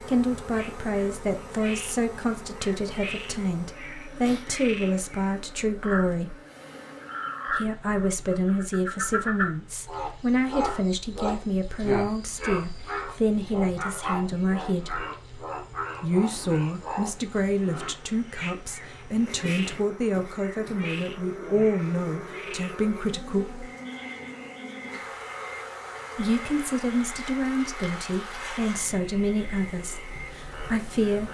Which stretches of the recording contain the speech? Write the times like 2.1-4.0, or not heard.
0.0-6.3, 7.5-15.1, 16.0-23.6, 26.1-31.3.